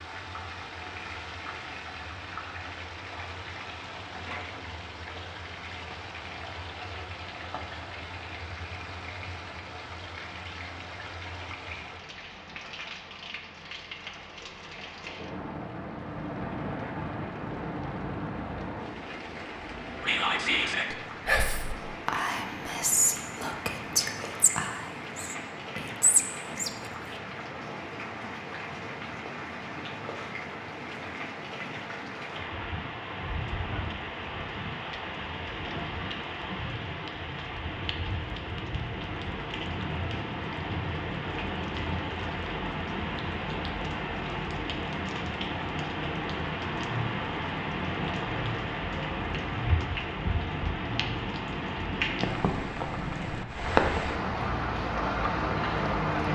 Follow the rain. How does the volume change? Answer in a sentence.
The loudness of the rain goes up.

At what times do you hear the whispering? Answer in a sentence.
The whispering can be heard from 20.0 to 26.9 s.